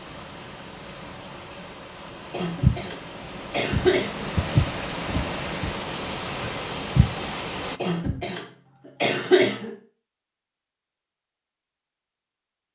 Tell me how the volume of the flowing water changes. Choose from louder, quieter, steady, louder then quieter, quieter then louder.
louder.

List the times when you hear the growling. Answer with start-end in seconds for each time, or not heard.
not heard.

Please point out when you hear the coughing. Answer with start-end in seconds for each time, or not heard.
2.3-4.3, 7.8-9.8.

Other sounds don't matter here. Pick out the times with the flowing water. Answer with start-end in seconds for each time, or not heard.
0.0-7.8.